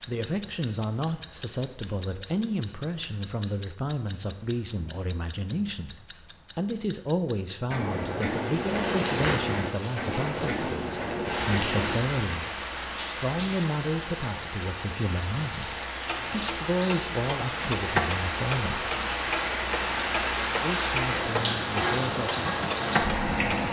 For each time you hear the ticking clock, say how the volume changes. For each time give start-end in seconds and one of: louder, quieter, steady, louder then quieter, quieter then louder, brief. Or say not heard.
0.0-23.6 steady.